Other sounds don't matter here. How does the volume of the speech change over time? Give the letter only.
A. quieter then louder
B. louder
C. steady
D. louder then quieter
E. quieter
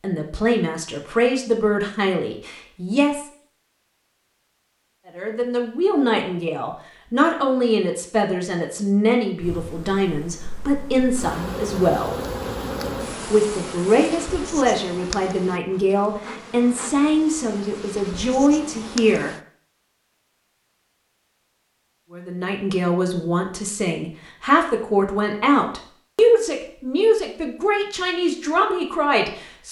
C.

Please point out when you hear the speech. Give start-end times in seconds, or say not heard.
0.0-3.2, 5.0-12.2, 13.3-19.4, 22.1-29.6.